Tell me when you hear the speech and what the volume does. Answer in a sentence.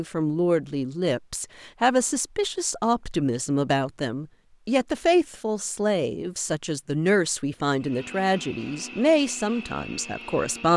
You can hear the speech from 0.0 to 10.7 s, at a steady volume.